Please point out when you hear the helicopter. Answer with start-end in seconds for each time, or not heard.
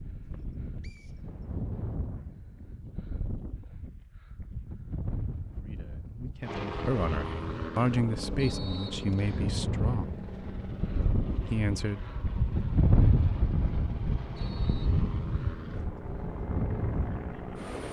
6.4-17.8.